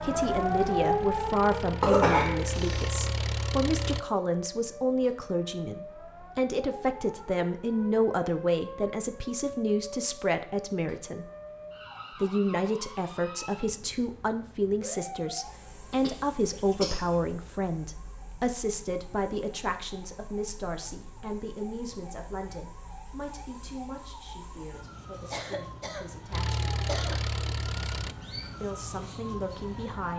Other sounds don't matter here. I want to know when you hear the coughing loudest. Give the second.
2 s.